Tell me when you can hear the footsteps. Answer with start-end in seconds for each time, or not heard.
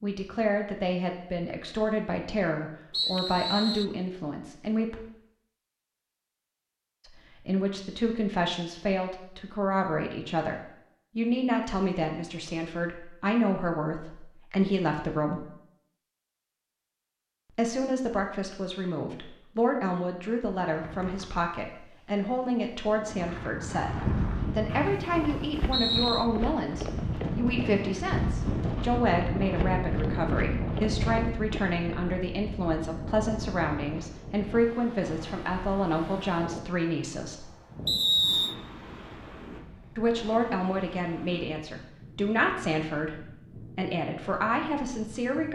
23.9-31.6.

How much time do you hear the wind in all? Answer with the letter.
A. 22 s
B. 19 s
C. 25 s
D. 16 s
C.